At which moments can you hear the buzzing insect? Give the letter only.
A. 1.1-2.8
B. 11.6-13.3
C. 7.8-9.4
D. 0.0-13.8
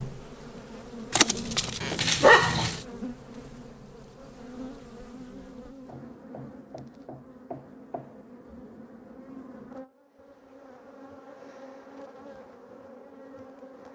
D.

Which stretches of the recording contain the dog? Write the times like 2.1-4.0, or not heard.
1.1-2.8.